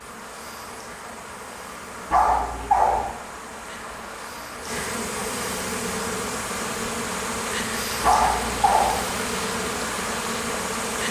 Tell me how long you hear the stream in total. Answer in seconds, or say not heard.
11 s.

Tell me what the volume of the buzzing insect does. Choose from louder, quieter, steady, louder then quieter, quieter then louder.
louder.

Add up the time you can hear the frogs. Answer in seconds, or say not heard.
not heard.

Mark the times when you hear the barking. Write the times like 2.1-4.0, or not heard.
2.1-3.1, 8.0-9.1.